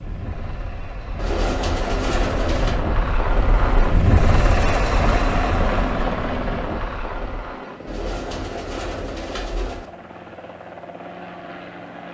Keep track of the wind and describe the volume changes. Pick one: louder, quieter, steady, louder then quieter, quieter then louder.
louder then quieter.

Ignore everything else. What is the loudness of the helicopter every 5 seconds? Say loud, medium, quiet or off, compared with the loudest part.
loud, loud, medium.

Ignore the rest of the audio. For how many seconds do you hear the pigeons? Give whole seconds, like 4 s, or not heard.
4 s.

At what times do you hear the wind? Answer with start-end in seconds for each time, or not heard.
0.0-7.5.